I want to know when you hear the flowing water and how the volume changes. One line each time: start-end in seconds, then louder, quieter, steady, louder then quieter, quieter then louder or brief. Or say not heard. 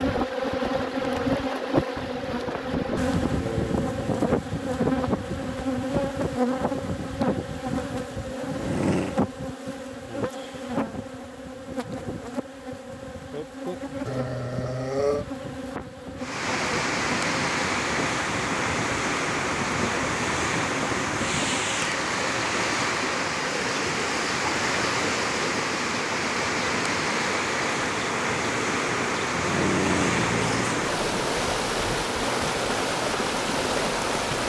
16.1-34.4 steady.